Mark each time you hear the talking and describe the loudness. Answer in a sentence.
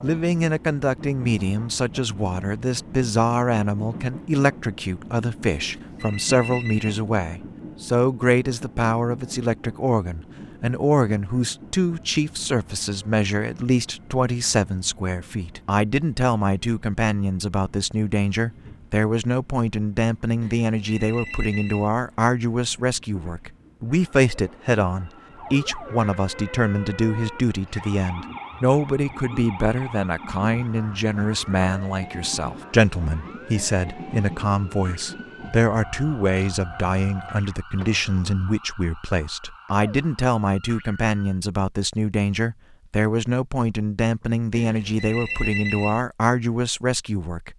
The talking can be heard from 0.0 to 47.5 s, at a steady volume.